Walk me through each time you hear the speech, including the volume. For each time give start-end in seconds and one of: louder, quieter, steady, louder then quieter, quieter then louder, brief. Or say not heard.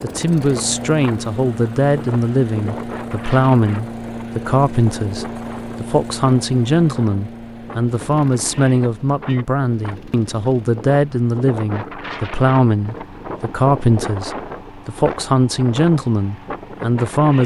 0.0-17.4 steady.